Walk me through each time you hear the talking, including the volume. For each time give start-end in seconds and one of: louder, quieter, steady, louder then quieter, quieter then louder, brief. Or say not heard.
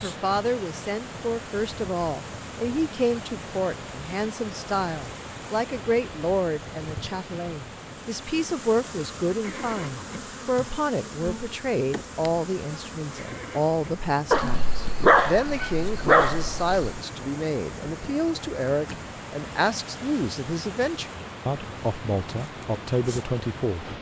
0.0-23.9 steady.